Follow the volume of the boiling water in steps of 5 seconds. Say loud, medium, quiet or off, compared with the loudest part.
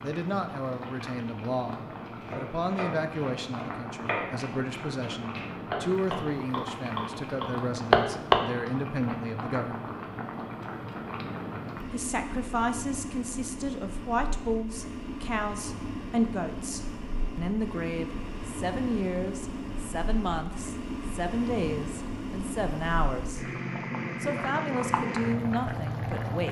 medium, medium, medium, medium, loud, loud.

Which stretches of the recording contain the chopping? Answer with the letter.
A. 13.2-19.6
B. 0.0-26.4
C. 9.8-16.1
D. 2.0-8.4
D.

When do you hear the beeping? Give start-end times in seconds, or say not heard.
not heard.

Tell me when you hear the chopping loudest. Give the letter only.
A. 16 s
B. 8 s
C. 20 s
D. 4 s
B.